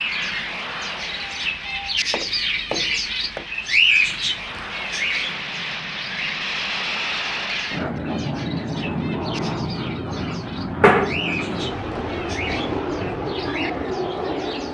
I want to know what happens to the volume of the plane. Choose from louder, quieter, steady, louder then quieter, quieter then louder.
louder.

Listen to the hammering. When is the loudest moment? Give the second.
11 s.